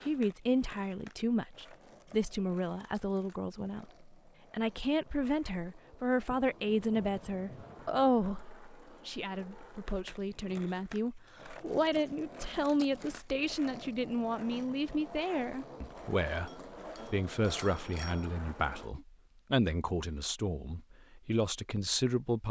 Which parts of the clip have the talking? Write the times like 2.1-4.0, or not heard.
0.0-22.4.